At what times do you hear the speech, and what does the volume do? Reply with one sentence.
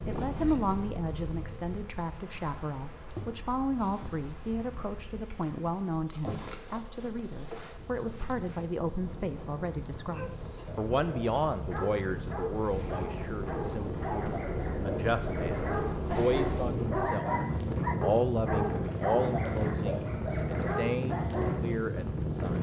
The speech can be heard from 0.1 to 17.4 s, at a steady volume; and from 17.9 to 22.5 s, getting quieter then louder.